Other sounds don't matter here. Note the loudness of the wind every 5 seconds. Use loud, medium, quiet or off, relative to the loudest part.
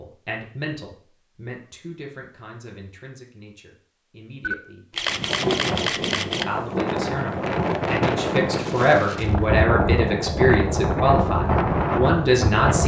off, loud, loud.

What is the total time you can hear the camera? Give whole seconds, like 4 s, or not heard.
2 s.